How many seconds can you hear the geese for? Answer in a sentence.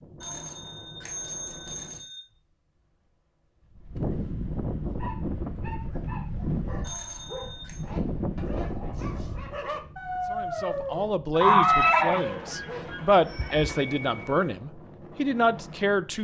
The geese can be heard for 2 seconds in total.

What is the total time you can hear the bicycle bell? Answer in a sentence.
The bicycle bell can be heard for 5 seconds in total.